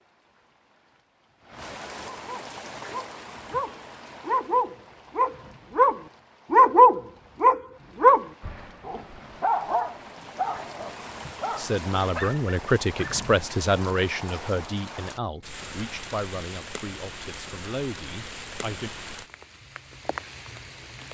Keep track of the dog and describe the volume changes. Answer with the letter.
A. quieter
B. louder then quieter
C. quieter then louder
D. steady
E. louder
B.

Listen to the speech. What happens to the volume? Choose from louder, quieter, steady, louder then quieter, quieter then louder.
quieter.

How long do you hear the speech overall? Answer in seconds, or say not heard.
7 s.